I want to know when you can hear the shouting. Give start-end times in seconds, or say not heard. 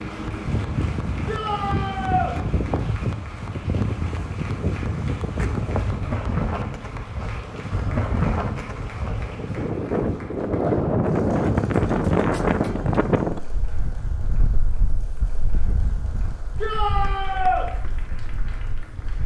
1.2-2.4, 16.6-17.6.